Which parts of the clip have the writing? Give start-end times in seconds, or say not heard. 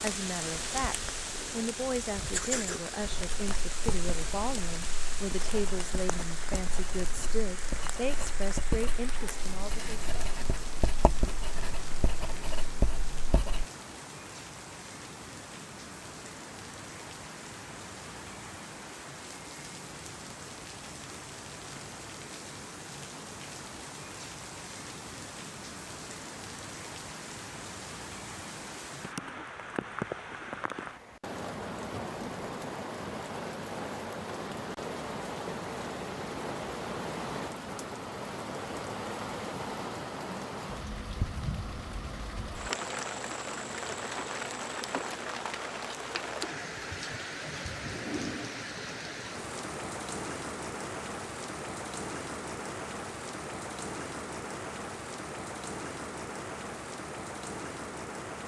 3.0-13.7.